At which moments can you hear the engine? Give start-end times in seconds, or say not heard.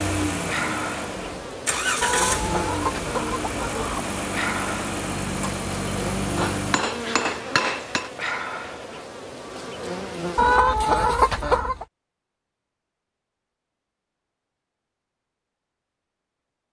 0.0-6.8.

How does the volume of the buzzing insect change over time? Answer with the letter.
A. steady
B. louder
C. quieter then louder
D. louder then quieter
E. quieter
A.